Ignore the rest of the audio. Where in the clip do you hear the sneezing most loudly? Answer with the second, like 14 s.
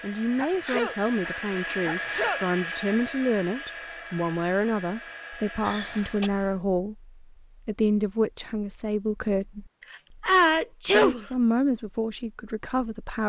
10 s.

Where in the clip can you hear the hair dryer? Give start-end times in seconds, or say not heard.
0.0-6.6.